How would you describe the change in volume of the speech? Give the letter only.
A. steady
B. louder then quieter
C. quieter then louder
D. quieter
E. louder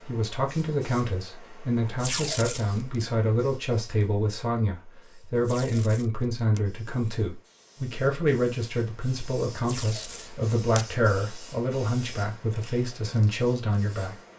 A.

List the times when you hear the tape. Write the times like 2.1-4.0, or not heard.
2.0-2.8, 5.5-6.6, 9.7-10.8.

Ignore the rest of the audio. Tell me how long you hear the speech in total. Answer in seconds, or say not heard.
14 s.